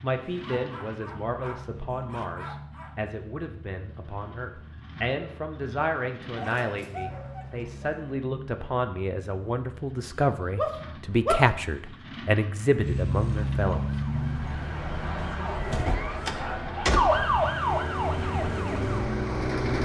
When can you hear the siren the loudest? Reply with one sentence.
The volume of the siren peaks at 17 seconds.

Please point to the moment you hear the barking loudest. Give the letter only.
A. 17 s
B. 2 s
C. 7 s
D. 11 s
D.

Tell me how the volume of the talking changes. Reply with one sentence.
The loudness of the talking goes up.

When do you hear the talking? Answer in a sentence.
You can hear the talking from 0.0 to 14.0 s.